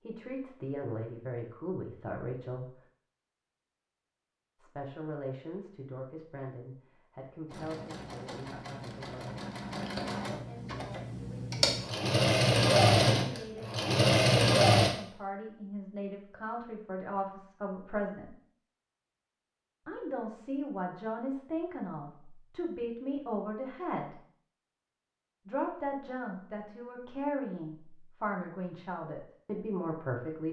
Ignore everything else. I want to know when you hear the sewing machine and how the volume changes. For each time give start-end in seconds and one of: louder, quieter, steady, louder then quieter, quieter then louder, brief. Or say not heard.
7.5-14.9 louder.